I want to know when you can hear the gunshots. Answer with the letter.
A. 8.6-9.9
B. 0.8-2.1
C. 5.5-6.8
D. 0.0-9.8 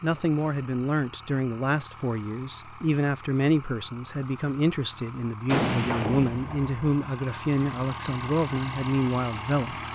C.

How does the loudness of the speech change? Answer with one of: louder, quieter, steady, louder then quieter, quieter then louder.
steady.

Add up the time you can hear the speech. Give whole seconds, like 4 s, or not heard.
10 s.